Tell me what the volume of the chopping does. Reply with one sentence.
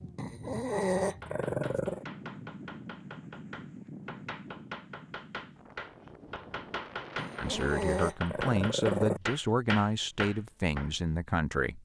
The volume of the chopping goes up.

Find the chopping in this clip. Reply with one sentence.
The chopping can be heard from 1.0 to 10.9 s.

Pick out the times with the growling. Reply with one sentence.
You can hear the growling from 0.1 to 2.0 s and from 7.2 to 9.2 s.